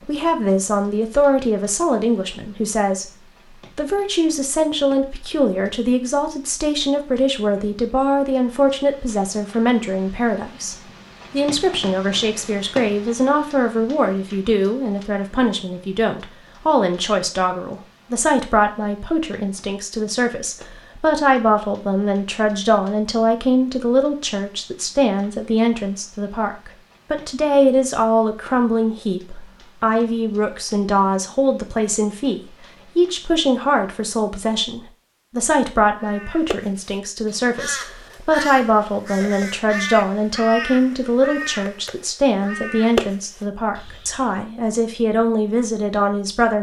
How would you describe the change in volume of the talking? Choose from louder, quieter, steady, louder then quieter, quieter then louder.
steady.